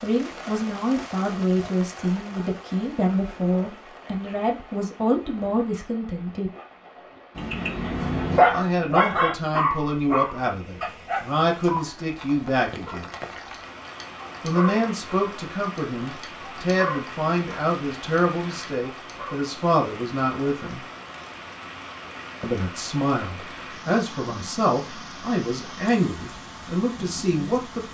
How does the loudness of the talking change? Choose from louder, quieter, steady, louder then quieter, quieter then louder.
steady.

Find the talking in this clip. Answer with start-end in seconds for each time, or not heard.
0.0-6.5, 8.5-13.1, 14.4-20.9, 22.4-27.8.